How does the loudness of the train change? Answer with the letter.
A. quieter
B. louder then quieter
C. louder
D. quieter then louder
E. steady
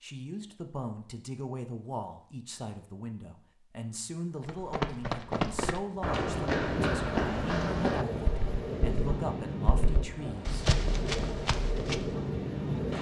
E.